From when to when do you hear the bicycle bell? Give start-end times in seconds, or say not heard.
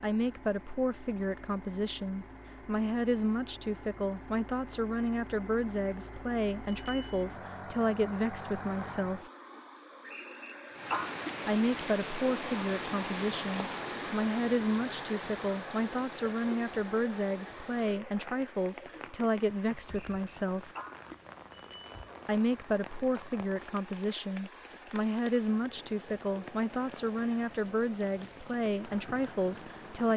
6.7-7.2, 21.5-22.1.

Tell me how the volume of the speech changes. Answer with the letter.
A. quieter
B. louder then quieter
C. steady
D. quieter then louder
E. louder
C.